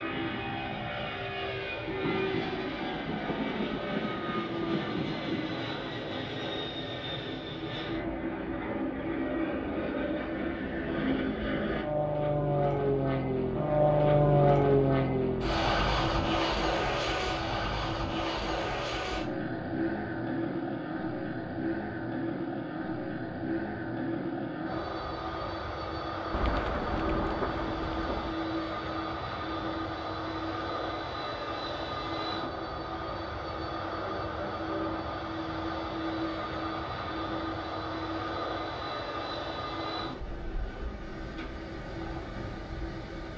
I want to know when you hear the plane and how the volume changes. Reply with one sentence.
You can hear the plane from 0.0 to 43.3 s, getting louder then quieter.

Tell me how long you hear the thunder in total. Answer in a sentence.
The thunder can be heard for 6 seconds in total.